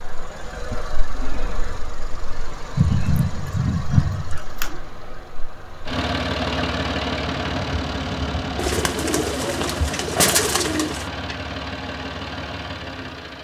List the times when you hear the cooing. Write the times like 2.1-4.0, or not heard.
2.8-4.7, 8.6-11.1.